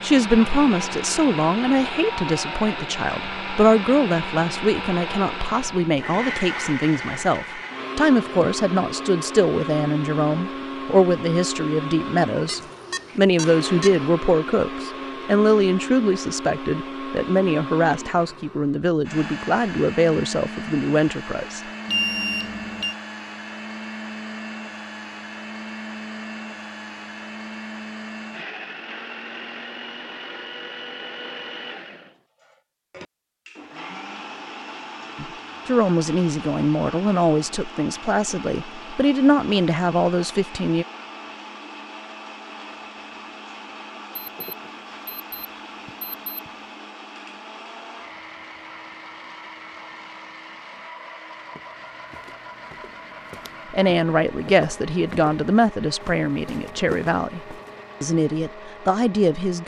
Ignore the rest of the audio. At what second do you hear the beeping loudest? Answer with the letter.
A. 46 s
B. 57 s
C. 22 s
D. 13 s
C.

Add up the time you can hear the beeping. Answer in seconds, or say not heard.
5 s.